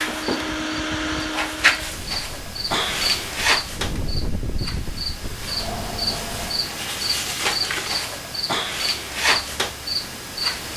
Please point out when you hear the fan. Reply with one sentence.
You can hear the fan from 0.0 to 6.8 s.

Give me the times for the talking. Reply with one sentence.
You can't hear the talking here.